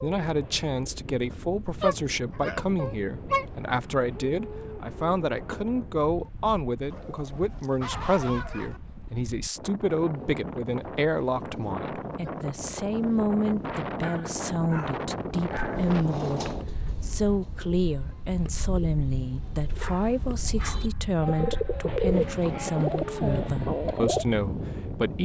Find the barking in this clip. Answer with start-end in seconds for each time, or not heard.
1.8-3.5, 6.9-8.8, 14.0-15.8, 19.8-21.1.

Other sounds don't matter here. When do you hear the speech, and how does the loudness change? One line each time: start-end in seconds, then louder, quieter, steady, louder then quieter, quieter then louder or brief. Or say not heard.
0.0-25.1 steady.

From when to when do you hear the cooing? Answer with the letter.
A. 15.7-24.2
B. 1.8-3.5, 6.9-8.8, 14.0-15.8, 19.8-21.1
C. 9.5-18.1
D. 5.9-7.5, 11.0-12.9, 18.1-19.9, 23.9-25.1
A.